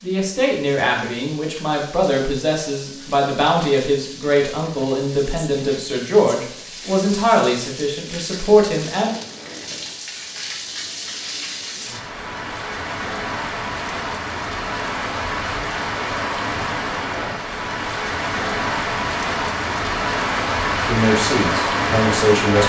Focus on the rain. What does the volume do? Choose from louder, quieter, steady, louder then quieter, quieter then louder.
louder.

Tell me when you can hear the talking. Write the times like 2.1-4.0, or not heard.
0.0-9.1, 20.9-22.6.